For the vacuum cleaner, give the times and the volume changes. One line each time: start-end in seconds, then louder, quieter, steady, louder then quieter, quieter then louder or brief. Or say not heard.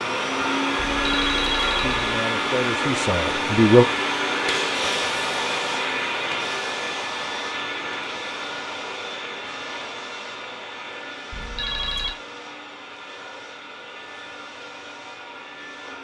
0.0-15.9 quieter.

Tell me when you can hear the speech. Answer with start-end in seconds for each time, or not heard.
1.8-3.9.